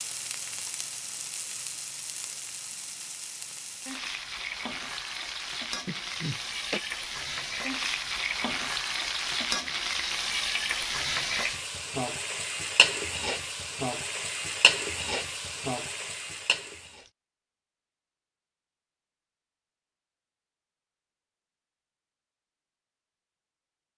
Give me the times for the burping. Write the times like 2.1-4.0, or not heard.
5.8-6.8.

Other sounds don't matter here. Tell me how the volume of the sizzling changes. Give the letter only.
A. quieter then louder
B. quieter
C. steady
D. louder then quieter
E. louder
E.